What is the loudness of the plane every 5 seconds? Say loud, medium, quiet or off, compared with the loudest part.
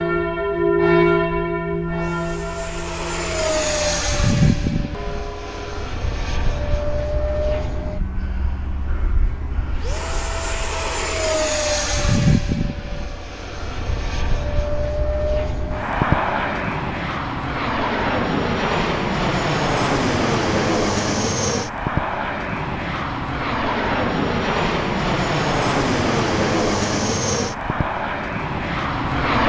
loud, medium, loud, loud, loud, loud.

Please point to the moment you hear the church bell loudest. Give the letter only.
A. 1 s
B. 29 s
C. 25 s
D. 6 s
A.